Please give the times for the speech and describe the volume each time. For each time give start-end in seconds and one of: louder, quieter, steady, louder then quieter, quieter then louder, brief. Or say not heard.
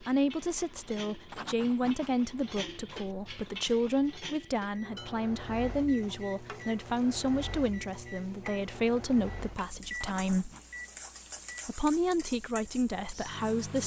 0.0-10.5 steady
11.7-13.8 brief.